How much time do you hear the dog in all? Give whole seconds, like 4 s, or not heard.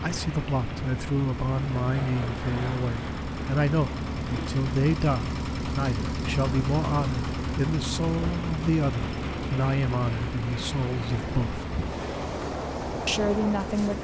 not heard.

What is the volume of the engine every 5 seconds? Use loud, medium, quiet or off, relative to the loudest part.
loud, loud, medium.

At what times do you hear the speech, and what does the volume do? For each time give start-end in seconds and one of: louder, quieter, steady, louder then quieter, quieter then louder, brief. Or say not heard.
0.0-11.7 steady
13.1-13.9 brief.